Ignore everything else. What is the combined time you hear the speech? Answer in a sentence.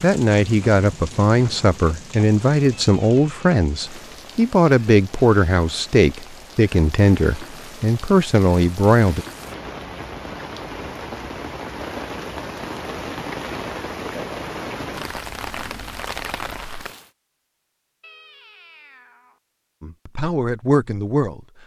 You can hear the speech for 11 seconds altogether.